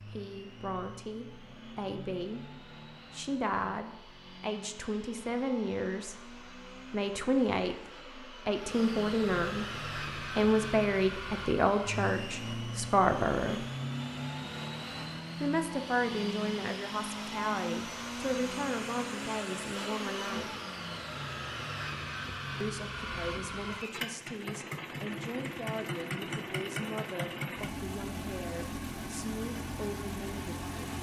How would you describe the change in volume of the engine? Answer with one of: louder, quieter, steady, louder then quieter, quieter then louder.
louder.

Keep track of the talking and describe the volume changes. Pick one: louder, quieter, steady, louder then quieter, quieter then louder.
louder then quieter.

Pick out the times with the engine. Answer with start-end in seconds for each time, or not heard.
0.0-30.9.